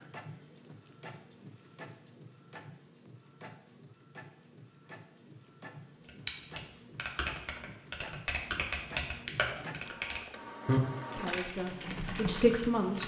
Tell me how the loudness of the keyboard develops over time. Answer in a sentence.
The volume of the keyboard goes up, then down.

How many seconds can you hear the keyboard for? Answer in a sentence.
The keyboard can be heard for 7 seconds in total.